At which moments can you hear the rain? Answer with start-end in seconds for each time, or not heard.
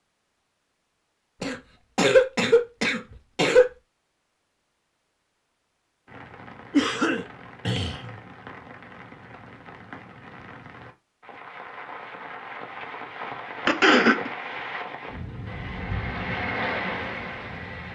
6.0-17.8.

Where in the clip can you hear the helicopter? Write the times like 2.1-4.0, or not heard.
15.4-17.8.